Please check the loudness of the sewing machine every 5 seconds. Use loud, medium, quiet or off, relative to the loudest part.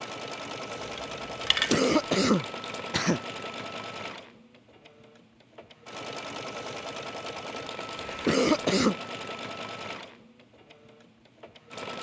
loud, loud, medium.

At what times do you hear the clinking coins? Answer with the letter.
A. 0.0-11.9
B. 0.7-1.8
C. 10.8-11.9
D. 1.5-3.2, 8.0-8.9
B.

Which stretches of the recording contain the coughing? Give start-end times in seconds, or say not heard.
1.5-3.2, 8.0-8.9.